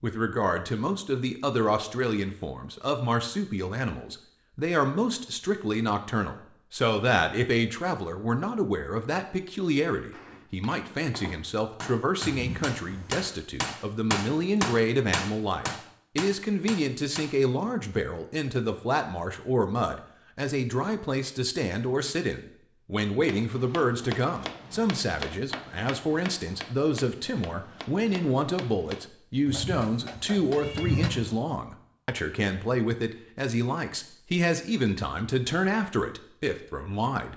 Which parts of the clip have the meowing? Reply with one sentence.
The meowing can be heard from 12.2 to 13.3 s and from 29.4 to 31.4 s.